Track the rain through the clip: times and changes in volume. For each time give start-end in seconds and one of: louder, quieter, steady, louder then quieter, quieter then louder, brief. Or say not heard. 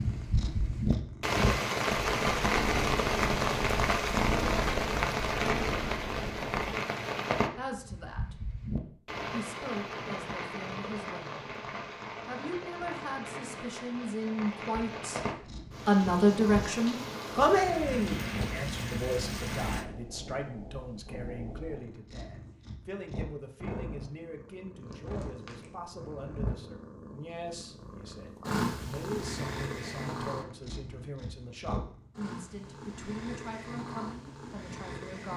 0.0-19.9 quieter.